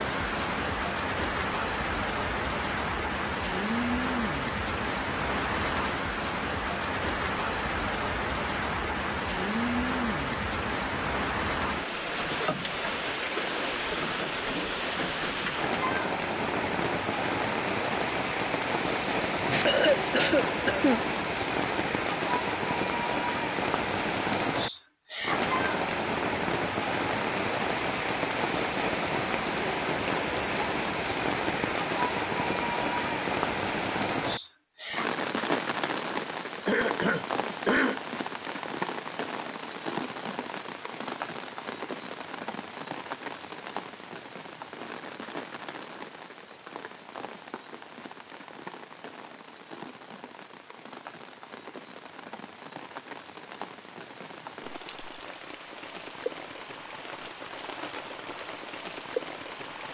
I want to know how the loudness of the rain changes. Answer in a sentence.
The loudness of the rain goes down.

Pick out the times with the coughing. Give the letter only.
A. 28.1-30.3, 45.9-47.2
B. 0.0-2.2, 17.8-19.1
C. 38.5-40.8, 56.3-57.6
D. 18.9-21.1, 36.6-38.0
D.